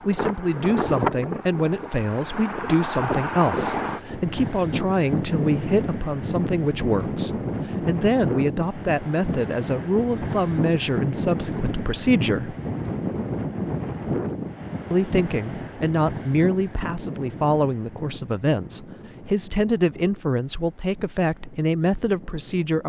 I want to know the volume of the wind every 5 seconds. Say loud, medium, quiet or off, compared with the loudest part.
loud, loud, loud, medium, quiet.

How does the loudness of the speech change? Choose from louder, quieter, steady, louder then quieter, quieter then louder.
steady.